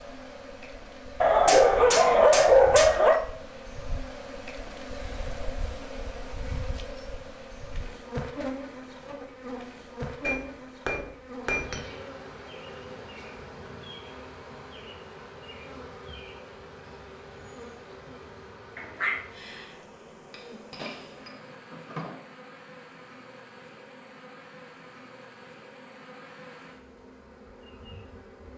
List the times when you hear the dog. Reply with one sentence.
The dog can be heard from 1.2 to 3.2 s and from 18.8 to 19.2 s.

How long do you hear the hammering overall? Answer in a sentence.
You can hear the hammering for 5 seconds altogether.